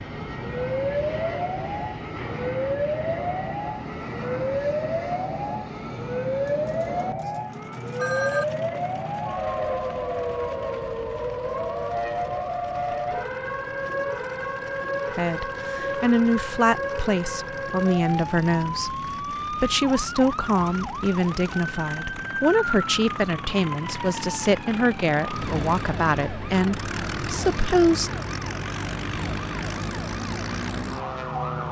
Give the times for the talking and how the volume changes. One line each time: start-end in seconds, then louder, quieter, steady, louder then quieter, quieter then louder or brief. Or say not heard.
15.2-28.1 steady.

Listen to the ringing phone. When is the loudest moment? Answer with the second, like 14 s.
8 s.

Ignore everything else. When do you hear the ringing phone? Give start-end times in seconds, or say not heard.
6.5-8.4.